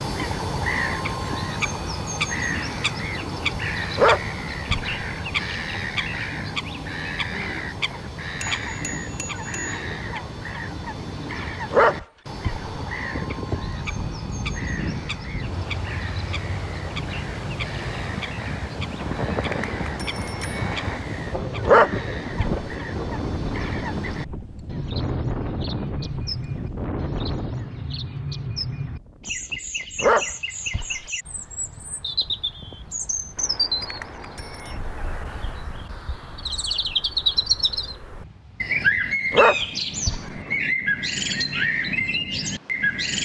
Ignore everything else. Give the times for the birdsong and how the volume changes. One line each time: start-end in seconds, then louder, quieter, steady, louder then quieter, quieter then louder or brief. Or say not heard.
0.0-43.2 quieter then louder.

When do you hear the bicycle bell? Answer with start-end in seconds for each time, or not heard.
8.4-9.8, 18.9-21.0, 33.4-34.8.